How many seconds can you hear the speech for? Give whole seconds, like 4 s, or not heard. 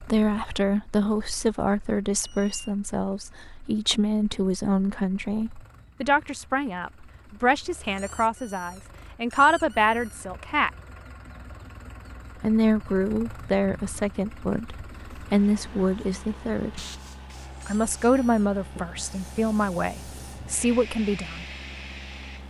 19 s.